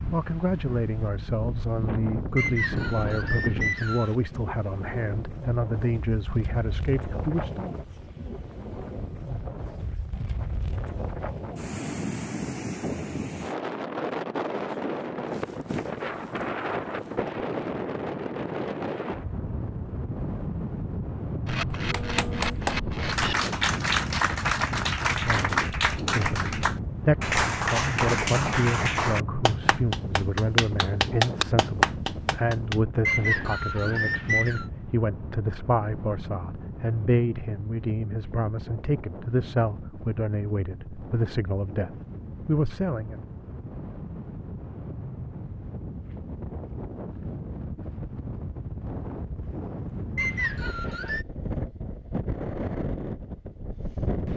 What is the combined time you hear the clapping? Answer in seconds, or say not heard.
11 s.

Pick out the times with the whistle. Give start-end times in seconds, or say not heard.
2.4-4.2, 33.0-34.6, 50.1-51.2.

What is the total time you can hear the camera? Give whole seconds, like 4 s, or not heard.
2 s.